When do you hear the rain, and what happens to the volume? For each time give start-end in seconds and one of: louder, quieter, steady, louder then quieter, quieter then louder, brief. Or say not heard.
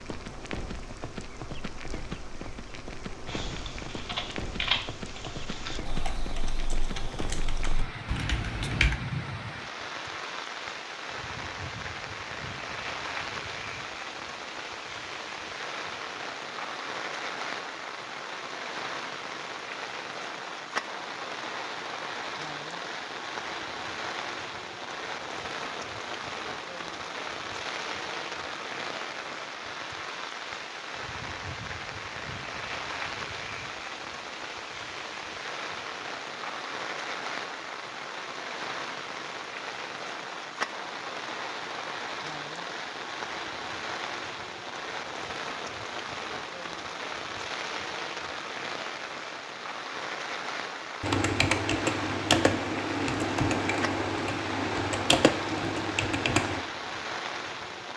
0.0-57.9 steady.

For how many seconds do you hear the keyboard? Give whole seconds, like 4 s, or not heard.
11 s.